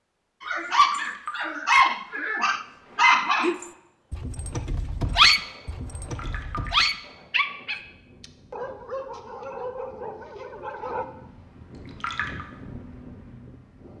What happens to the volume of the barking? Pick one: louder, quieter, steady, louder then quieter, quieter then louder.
quieter.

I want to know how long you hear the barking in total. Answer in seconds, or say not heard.
11 s.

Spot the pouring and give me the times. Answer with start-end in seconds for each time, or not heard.
0.6-1.6, 6.0-6.8, 11.7-12.4.